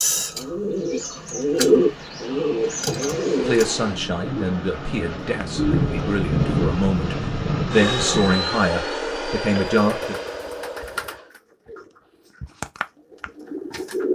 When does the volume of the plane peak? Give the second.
8 s.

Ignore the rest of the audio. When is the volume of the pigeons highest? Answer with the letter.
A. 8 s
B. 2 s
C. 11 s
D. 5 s
B.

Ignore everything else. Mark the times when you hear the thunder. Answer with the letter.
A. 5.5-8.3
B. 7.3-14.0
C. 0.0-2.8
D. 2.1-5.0
A.